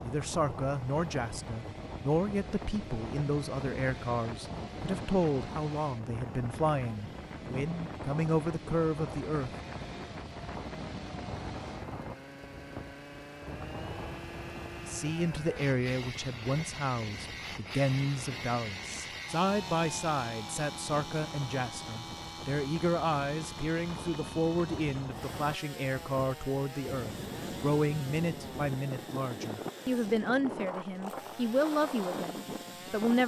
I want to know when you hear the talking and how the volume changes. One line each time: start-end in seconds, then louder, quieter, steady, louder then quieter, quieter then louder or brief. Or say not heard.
0.0-9.5 steady
14.8-33.2 steady.